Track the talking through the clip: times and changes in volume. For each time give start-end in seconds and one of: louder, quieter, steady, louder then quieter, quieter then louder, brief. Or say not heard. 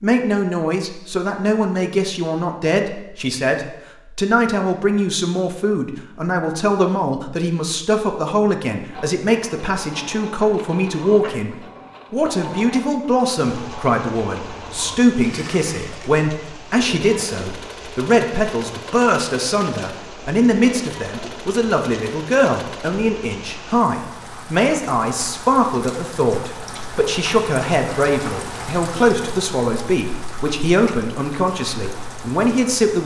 0.0-33.0 steady.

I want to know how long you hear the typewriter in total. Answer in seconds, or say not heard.
not heard.